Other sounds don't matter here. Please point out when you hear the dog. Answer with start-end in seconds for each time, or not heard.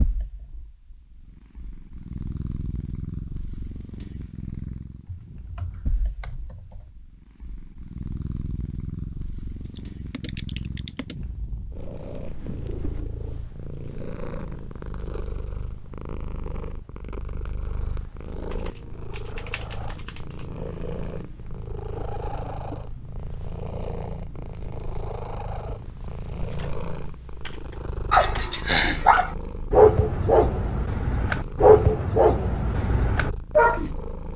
28.1-33.8.